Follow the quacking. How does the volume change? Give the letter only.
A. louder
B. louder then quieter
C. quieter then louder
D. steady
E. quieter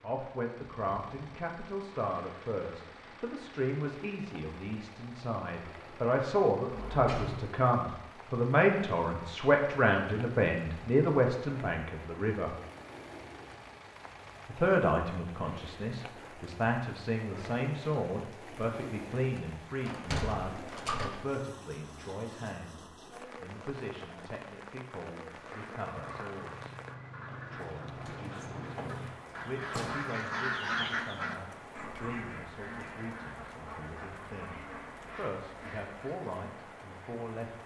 B.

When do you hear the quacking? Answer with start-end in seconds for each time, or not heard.
25.2-36.2.